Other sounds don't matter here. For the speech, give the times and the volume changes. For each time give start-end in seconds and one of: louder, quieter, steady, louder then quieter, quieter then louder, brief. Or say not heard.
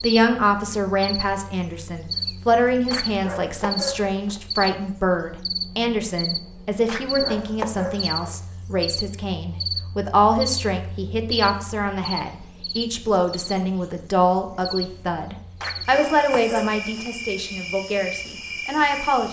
0.0-19.2 steady.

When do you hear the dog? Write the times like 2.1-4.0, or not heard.
2.9-4.4, 6.8-8.3, 15.6-17.1.